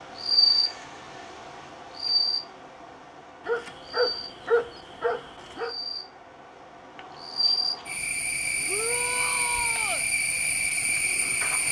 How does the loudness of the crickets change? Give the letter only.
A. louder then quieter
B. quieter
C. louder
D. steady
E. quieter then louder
E.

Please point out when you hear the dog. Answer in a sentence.
The dog can be heard from 3.5 to 5.7 s.